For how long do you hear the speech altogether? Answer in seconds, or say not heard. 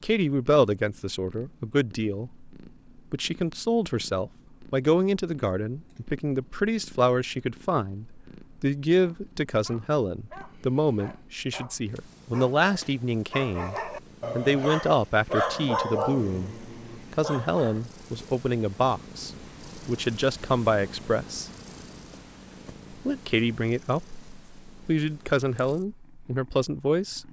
25 s.